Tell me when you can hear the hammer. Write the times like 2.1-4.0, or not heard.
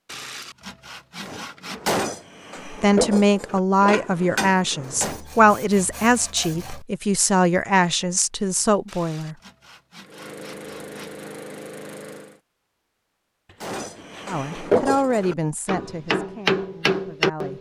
1.2-5.2, 13.6-17.5.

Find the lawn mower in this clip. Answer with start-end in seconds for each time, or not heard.
10.0-12.4.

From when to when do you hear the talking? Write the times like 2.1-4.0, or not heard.
2.6-9.3, 14.2-17.5.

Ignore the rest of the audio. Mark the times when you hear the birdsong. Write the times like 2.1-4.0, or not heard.
not heard.